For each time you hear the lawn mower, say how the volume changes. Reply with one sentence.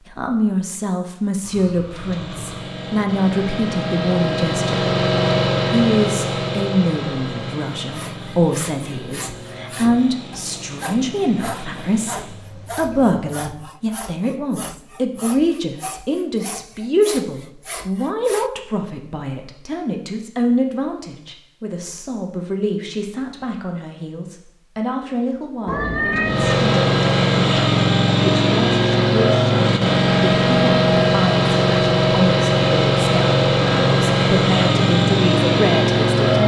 You can hear the lawn mower from 1.8 to 12.4 s, getting louder then quieter; and from 26.2 to 36.4 s, at a steady volume.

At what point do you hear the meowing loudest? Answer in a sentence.
The volume of the meowing peaks at 26 seconds.